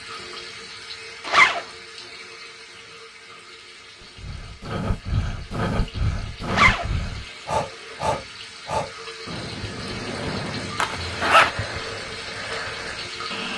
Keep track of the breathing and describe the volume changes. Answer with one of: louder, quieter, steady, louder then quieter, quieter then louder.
quieter.